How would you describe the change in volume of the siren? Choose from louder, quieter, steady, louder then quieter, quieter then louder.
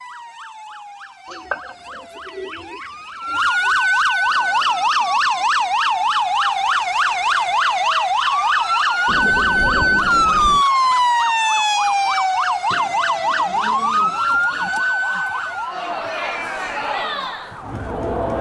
louder then quieter.